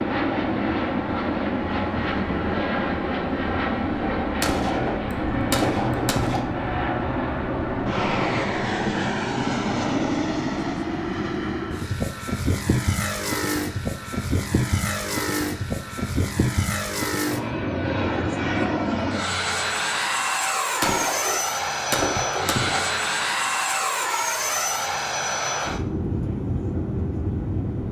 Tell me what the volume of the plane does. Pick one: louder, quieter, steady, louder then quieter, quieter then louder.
steady.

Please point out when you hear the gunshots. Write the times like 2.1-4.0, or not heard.
4.4-6.4, 20.8-22.8.